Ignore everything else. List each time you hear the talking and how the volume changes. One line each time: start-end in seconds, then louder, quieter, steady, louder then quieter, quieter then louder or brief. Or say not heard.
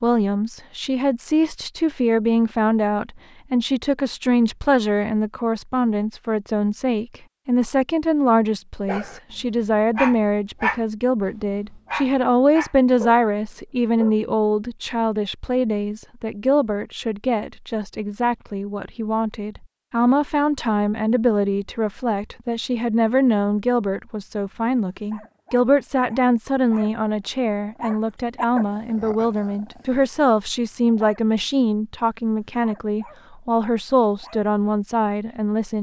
0.0-35.7 steady.